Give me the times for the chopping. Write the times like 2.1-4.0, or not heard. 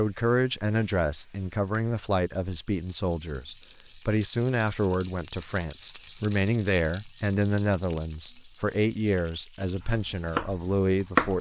9.6-11.3.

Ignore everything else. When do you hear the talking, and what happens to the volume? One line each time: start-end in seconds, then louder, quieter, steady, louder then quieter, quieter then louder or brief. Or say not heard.
0.0-11.3 steady.